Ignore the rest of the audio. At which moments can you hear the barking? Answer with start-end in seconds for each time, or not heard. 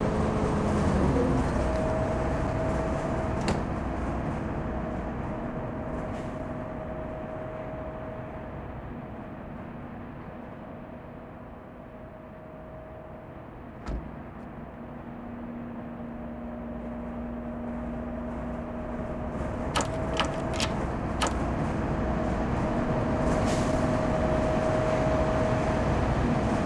not heard.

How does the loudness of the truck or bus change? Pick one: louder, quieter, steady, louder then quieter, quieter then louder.
quieter then louder.